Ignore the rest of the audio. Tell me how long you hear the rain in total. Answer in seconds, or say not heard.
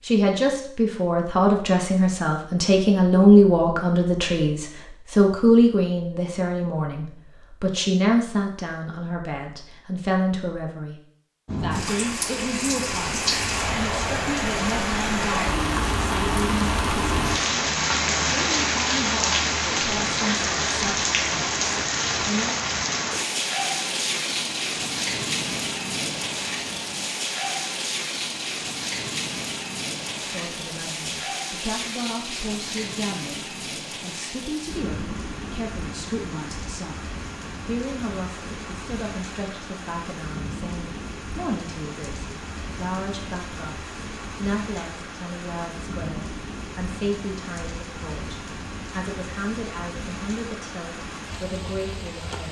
41 s.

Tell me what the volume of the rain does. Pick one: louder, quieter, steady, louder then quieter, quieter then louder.
quieter.